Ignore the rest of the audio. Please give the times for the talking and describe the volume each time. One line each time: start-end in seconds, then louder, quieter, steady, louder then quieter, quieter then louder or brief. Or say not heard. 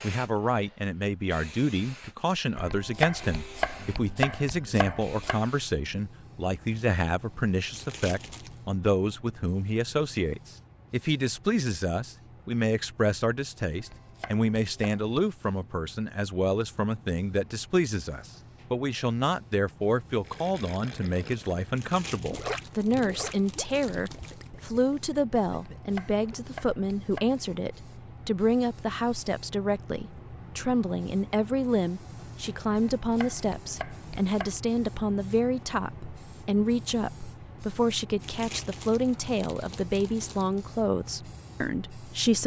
0.0-42.4 steady.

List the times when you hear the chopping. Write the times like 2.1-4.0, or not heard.
2.5-5.4, 13.8-15.0, 25.5-27.3, 32.8-34.5.